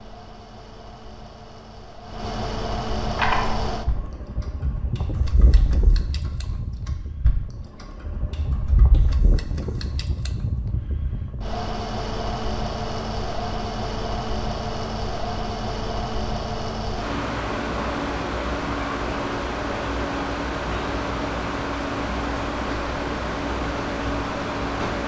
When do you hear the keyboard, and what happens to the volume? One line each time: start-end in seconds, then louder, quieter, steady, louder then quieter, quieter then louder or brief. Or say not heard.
3.1-9.9 quieter then louder.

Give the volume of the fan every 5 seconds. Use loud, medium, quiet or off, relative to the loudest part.
medium, medium, loud, loud, loud.